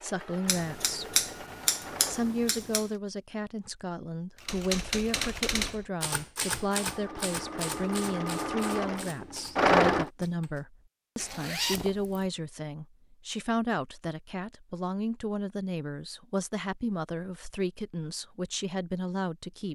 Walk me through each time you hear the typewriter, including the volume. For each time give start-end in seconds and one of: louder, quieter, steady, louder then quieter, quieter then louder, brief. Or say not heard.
4.3-10.7 quieter.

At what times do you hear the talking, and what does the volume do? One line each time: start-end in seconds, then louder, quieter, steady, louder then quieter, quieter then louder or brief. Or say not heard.
0.0-1.2 brief
2.0-19.7 steady.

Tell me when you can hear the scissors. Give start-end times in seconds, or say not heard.
0.5-2.9.